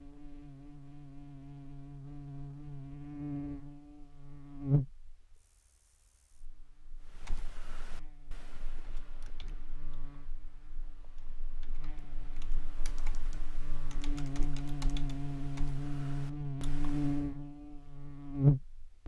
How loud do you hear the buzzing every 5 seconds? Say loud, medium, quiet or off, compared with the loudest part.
medium, quiet, quiet, loud.